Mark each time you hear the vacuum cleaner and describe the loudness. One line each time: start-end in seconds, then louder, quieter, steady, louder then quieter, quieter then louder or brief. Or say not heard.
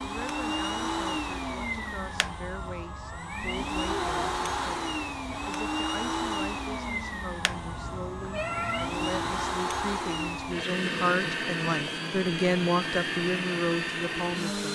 0.0-14.7 steady.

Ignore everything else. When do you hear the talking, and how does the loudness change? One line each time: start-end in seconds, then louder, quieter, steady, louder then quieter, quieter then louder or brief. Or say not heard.
0.0-14.7 louder.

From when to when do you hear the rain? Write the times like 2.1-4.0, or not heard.
not heard.